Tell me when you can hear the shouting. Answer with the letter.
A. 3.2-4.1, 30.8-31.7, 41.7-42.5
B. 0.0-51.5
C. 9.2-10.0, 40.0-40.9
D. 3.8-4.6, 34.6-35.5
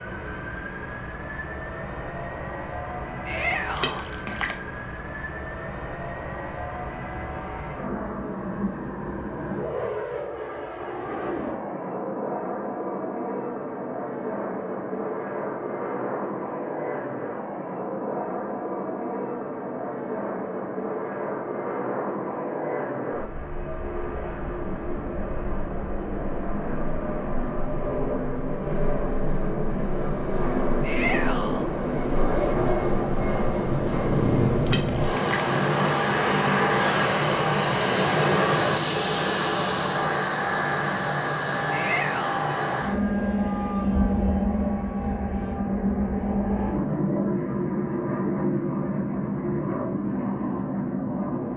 A.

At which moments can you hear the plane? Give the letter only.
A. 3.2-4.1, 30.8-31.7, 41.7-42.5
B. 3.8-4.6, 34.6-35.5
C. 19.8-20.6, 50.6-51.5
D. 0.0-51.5
D.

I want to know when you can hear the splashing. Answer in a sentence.
You can hear the splashing from 3.8 to 4.6 s and from 34.6 to 35.5 s.